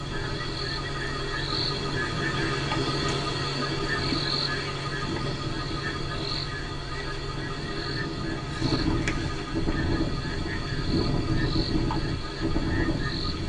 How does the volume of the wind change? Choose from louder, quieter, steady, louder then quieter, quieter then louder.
louder.